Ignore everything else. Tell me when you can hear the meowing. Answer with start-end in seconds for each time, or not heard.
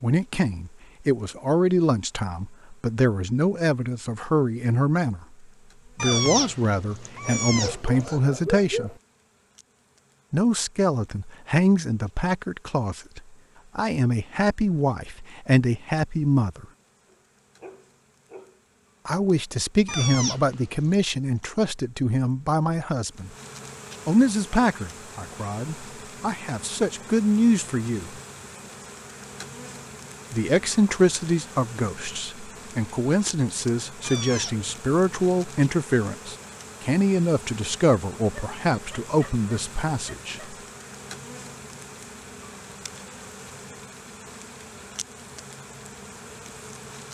6.0-8.2, 19.9-20.9, 34.0-34.7.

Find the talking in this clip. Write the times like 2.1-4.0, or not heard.
0.0-8.9, 10.3-16.6, 19.1-23.3, 24.1-28.1, 30.3-40.5.